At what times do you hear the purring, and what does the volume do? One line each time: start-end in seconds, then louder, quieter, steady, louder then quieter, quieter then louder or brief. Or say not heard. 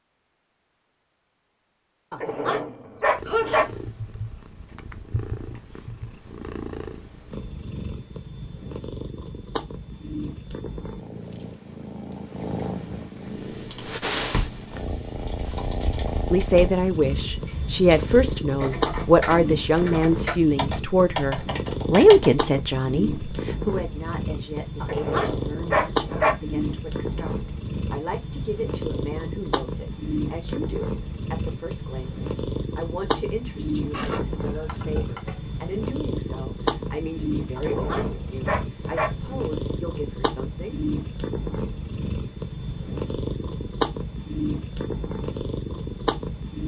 3.1-46.6 louder.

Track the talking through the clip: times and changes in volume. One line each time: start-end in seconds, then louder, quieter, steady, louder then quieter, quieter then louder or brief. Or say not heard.
16.3-40.8 quieter.